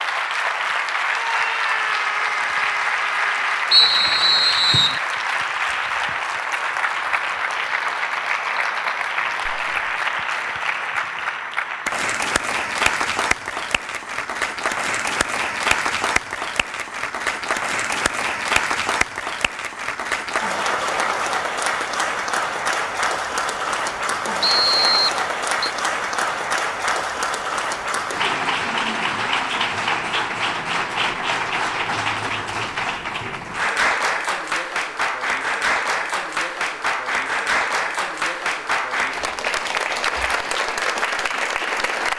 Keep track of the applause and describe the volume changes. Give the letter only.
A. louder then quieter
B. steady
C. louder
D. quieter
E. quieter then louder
B.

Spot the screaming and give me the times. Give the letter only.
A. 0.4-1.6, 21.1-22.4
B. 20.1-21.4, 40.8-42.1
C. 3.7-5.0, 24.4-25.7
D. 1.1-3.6
D.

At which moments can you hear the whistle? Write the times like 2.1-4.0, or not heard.
3.7-5.0, 24.4-25.7.